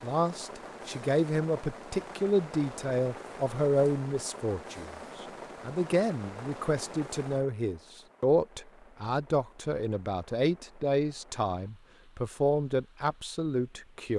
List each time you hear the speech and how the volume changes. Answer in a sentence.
The speech can be heard from 0.0 to 14.1 s, at a steady volume.